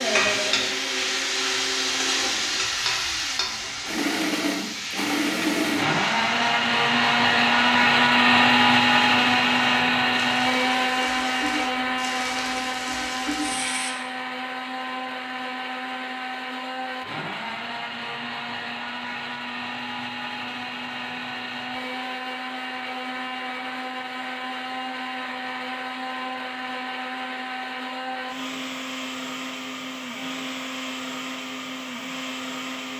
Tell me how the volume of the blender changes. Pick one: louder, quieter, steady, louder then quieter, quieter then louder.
louder then quieter.